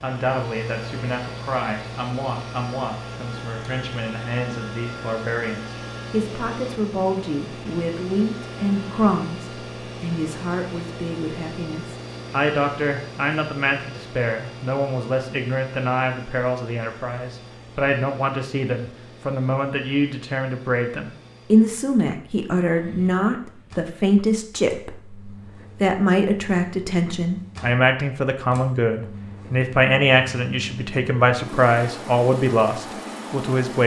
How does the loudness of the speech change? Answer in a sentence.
The loudness of the speech goes up.